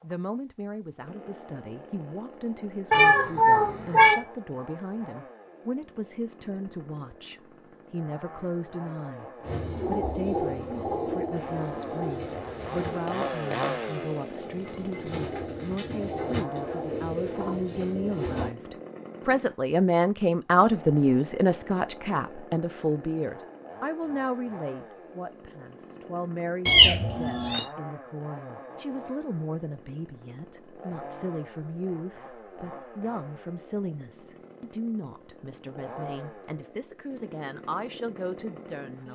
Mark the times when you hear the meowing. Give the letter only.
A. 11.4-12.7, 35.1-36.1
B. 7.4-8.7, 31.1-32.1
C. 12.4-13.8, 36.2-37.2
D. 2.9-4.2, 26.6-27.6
D.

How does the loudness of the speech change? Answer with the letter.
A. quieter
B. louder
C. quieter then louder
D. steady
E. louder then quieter
E.